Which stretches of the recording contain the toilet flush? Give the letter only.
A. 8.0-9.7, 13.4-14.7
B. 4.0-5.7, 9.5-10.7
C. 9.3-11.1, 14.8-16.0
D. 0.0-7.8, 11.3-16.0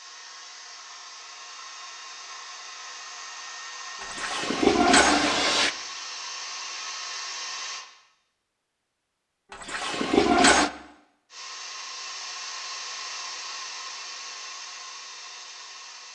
B.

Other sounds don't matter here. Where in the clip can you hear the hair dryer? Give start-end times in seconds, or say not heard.
0.0-7.8, 11.3-16.0.